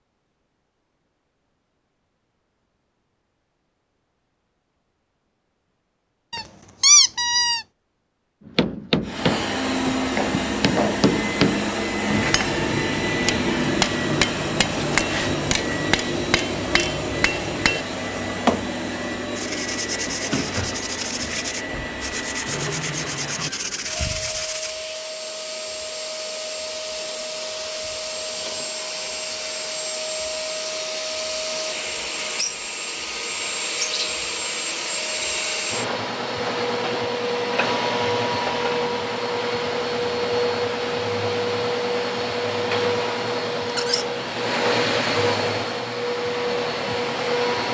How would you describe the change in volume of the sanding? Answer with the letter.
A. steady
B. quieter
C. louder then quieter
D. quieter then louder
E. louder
A.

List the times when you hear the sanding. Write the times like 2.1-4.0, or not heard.
19.4-24.8.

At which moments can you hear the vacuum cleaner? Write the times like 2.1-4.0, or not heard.
9.1-47.6.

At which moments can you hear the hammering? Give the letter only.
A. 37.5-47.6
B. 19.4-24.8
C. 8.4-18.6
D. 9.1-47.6
C.